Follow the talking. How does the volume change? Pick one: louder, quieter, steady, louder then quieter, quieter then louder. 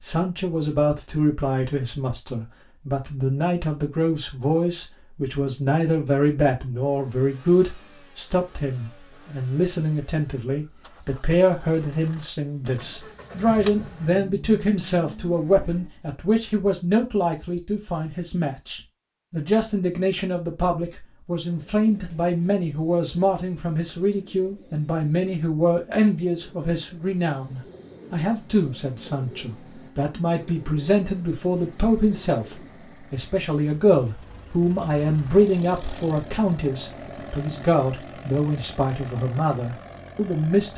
steady.